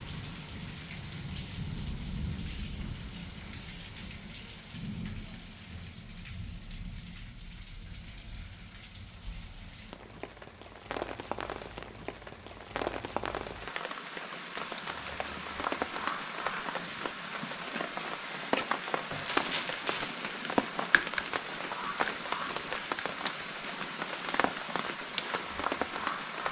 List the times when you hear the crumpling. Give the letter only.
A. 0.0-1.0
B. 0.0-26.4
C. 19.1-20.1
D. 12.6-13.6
C.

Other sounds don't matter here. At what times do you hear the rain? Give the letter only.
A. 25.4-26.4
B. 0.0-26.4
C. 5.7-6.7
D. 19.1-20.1
B.